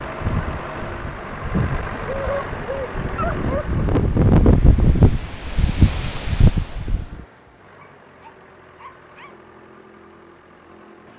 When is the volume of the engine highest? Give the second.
2 s.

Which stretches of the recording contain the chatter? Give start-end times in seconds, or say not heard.
not heard.